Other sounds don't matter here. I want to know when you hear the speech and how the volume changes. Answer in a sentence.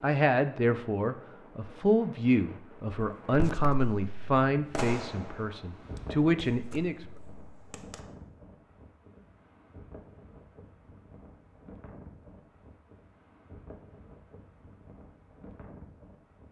You can hear the speech from 0.0 to 7.0 s, at a steady volume.